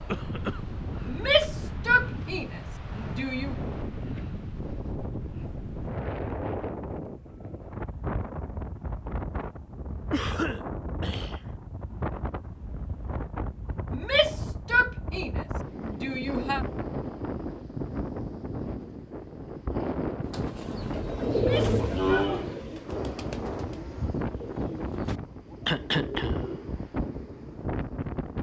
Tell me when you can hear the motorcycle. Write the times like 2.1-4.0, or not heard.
not heard.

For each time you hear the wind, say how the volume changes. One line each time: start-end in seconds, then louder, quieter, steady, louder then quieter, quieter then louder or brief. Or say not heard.
0.0-28.3 steady.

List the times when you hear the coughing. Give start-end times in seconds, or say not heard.
0.1-0.8, 10.1-11.5, 25.6-26.6.